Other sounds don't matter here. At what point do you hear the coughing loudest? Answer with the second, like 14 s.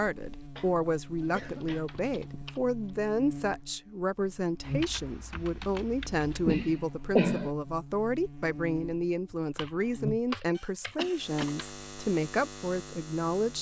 7 s.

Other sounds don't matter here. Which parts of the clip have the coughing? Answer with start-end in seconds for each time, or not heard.
0.6-2.5, 6.5-7.5, 10.6-11.4.